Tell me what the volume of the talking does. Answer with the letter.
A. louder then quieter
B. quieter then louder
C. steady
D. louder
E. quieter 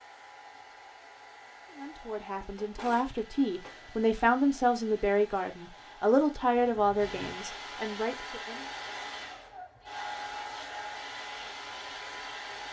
A.